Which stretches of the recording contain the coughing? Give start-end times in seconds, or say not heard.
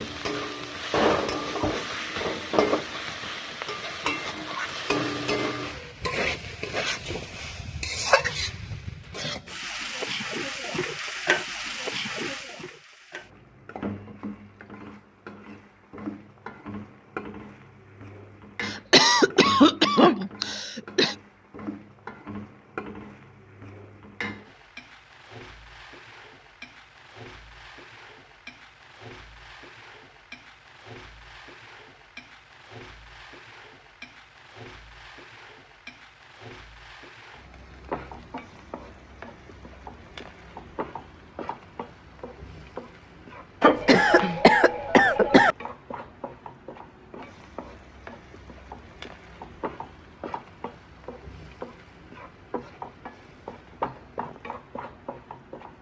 18.6-21.1, 43.6-45.5.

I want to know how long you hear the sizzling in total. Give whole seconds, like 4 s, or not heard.
56 s.